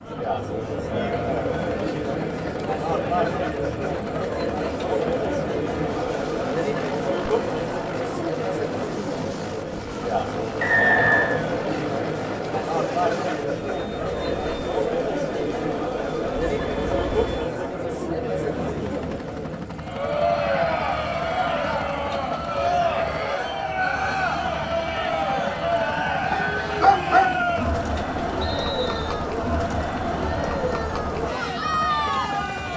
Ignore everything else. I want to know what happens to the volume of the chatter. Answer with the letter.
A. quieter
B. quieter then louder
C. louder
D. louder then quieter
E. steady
E.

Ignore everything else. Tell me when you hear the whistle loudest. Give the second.
11 s.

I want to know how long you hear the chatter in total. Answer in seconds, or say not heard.
33 s.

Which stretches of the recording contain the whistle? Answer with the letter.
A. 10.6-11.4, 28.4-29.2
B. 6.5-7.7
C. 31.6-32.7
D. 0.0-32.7
A.